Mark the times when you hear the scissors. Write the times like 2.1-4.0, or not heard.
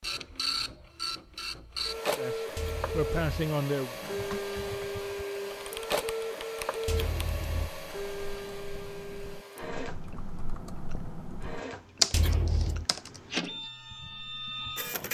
2.5-3.5, 6.8-7.7, 12.1-12.8.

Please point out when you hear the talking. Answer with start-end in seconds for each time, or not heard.
2.1-4.0.